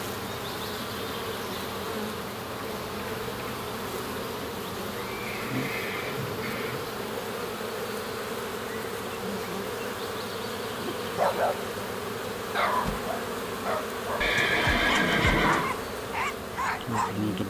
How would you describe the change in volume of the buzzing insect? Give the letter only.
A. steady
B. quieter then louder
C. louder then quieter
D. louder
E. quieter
A.